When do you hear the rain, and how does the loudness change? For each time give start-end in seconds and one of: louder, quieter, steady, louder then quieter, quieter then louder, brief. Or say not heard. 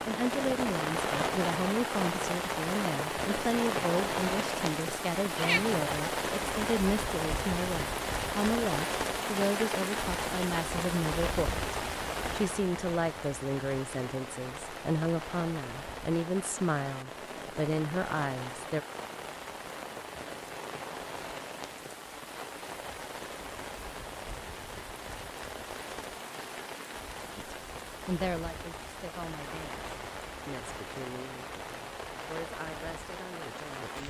0.0-34.0 quieter.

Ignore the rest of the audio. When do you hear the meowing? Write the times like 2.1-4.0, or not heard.
5.3-5.9.